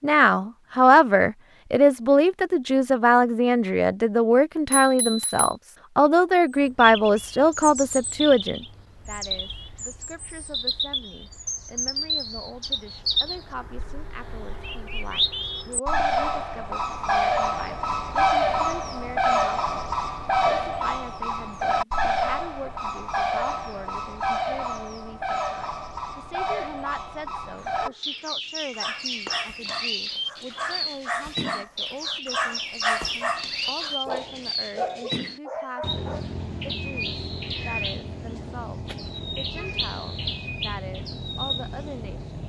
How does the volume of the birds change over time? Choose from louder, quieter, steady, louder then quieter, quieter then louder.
louder then quieter.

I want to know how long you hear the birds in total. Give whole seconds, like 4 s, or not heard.
36 s.